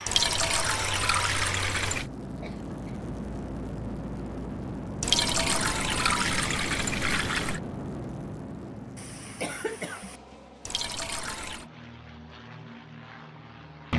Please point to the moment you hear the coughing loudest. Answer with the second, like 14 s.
10 s.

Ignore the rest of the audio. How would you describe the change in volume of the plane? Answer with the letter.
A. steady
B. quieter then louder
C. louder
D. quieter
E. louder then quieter
D.